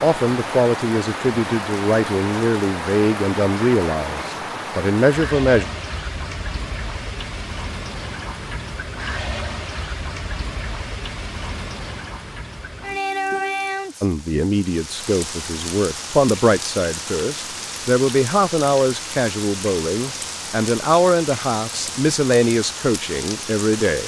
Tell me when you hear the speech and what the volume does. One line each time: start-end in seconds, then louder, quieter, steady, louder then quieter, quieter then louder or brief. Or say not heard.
0.0-5.7 steady
14.0-24.0 steady.